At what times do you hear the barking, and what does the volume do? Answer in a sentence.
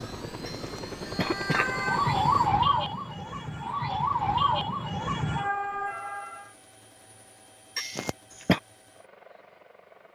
The barking can't be heard in this clip.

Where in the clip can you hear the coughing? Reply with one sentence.
The coughing can be heard from 0.5 to 1.7 s and from 7.8 to 8.6 s.